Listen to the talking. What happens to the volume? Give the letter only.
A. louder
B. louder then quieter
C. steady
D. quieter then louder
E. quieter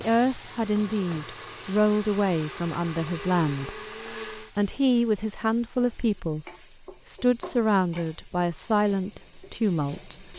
C.